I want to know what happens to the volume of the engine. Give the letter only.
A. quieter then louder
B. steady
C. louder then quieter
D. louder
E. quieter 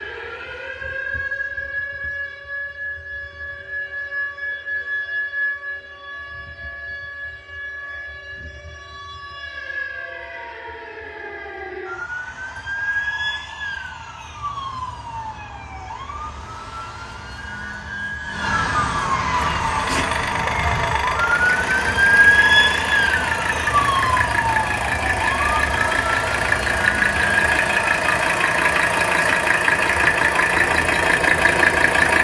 D.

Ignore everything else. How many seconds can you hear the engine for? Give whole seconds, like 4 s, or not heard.
13 s.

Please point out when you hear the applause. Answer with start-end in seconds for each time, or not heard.
not heard.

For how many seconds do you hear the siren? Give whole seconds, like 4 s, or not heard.
32 s.